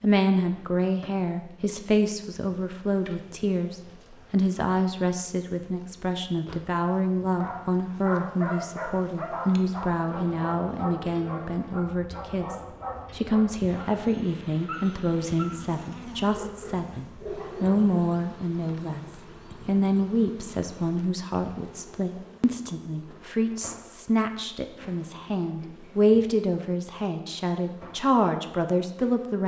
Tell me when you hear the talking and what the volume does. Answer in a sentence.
You can hear the talking from 0.0 to 29.4 s, at a steady volume.